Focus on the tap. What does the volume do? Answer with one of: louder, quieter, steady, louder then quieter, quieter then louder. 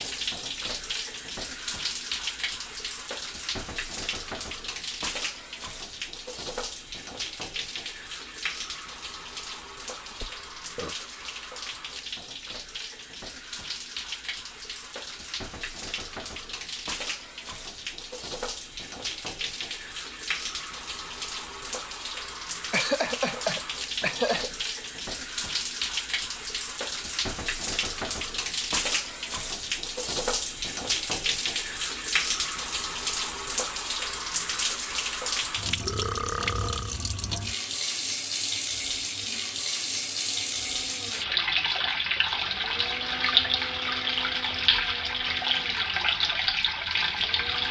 louder.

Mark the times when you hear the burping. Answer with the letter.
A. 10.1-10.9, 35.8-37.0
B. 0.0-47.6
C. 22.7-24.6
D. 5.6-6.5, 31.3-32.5
A.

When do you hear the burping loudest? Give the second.
36 s.